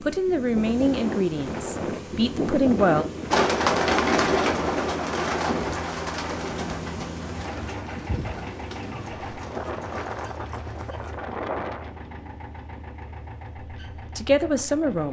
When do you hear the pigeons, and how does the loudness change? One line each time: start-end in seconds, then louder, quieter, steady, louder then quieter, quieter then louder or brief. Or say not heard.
3.3-11.2 quieter.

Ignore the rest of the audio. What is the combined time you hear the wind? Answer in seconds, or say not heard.
12 s.